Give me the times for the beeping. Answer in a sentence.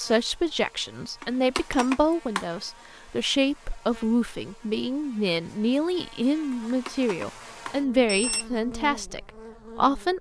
You can hear the beeping from 1.2 to 2.5 s and from 6.5 to 8.4 s.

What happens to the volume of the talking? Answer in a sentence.
The loudness of the talking stays about the same.